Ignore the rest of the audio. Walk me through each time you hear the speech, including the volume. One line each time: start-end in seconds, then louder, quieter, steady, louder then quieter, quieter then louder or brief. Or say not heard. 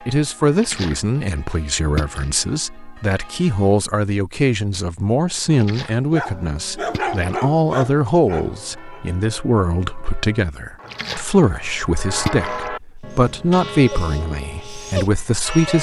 0.1-15.7 steady.